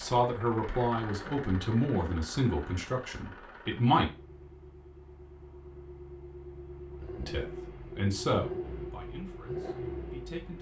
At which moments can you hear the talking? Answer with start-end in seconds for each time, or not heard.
0.0-4.1, 7.2-10.5.